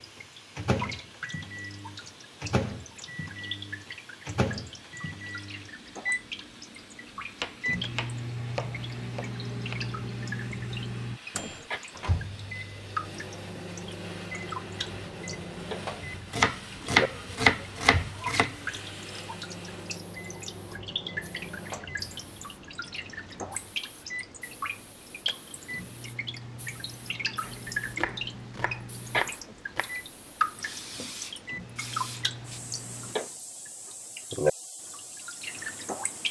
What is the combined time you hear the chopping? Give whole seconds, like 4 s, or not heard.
7 s.